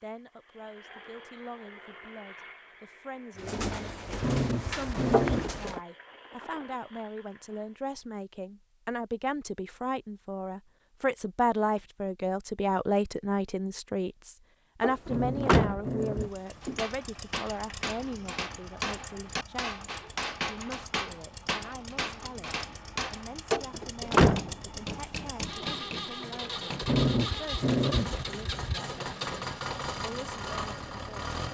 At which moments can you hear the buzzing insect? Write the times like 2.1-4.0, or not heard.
not heard.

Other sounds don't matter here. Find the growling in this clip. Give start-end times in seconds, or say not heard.
4.2-5.5, 15.1-16.4, 26.8-28.7.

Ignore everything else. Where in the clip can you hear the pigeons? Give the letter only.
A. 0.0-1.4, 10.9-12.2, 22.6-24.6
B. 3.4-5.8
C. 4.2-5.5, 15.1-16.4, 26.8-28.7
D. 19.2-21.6
B.